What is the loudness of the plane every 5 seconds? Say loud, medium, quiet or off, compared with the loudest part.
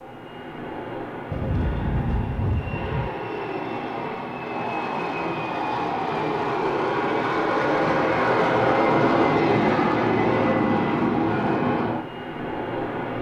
medium, loud, loud.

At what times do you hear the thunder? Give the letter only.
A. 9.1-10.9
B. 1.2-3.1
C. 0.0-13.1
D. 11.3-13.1
B.